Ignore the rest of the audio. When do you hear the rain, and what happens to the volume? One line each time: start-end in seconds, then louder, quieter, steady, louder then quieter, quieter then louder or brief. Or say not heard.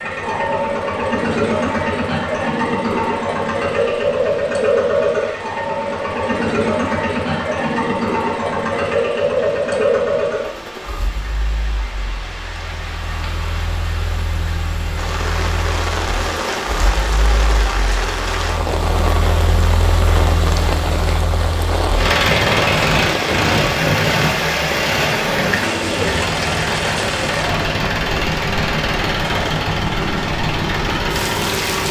0.0-31.8 louder.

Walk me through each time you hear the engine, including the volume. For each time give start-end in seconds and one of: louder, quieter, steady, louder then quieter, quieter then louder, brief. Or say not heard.
0.0-31.8 quieter then louder.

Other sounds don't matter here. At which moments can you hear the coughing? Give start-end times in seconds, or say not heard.
not heard.